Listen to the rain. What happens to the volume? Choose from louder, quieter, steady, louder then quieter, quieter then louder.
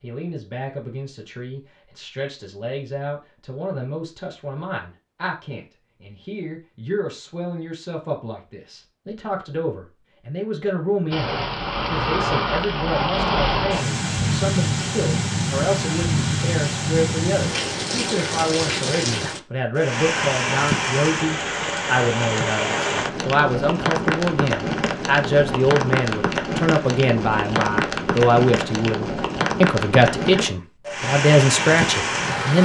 steady.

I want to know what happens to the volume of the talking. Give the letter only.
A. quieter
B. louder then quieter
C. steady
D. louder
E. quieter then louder
D.